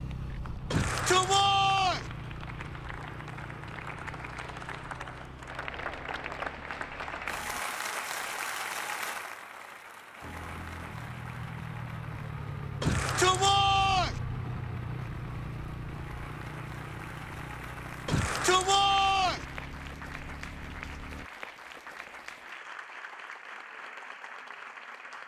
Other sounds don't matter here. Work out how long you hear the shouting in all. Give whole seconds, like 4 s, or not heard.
4 s.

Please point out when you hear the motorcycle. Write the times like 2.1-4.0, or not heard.
0.0-7.7, 10.2-21.3.